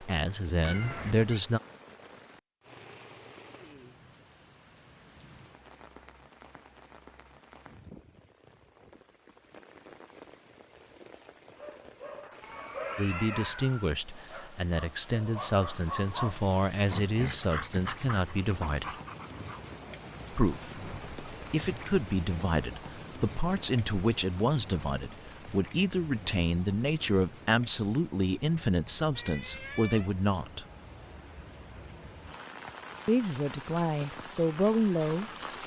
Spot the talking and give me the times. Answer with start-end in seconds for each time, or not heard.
0.0-1.6, 12.9-18.9, 20.3-30.6, 33.0-35.6.